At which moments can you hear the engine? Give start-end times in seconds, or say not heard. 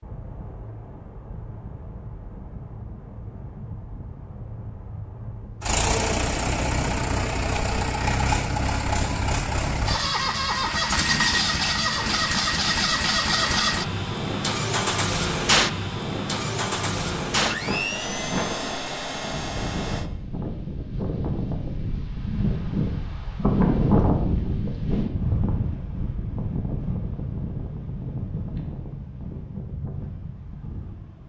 5.6-20.1.